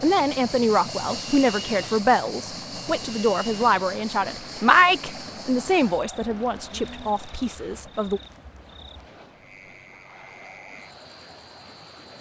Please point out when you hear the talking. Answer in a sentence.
The talking can be heard from 0.0 to 8.2 s.